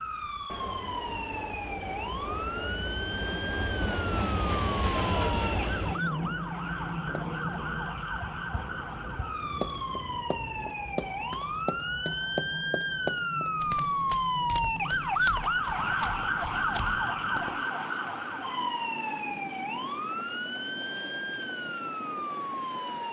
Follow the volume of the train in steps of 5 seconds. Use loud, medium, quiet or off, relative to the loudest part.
loud, loud, medium, medium, medium.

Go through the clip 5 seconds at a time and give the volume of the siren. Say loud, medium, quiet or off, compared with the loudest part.
medium, medium, loud, loud, medium.